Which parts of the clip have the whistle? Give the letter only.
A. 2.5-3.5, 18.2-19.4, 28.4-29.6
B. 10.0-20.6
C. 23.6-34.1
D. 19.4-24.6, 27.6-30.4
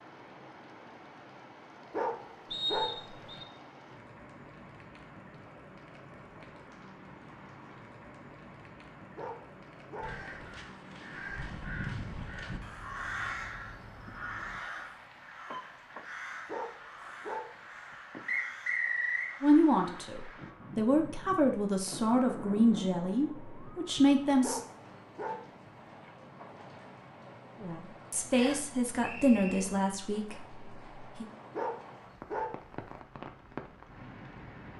A.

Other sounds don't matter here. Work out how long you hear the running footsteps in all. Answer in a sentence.
You can't hear the running footsteps here.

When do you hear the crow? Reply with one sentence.
You can hear the crow from 10.0 to 20.6 s.